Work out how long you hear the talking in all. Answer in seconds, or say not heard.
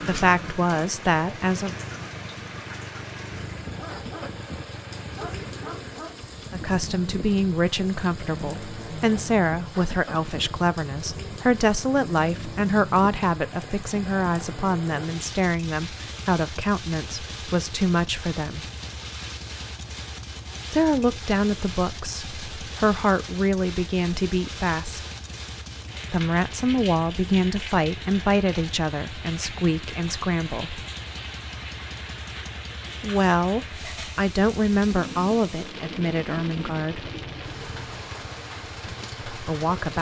28 s.